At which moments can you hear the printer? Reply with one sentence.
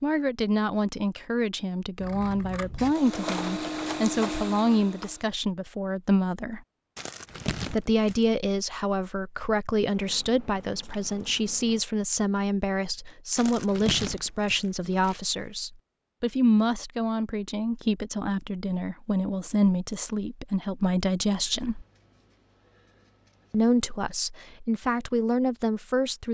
You can hear the printer from 2.8 to 5.3 s.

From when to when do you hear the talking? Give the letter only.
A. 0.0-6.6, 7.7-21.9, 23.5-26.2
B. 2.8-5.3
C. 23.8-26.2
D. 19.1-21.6
A.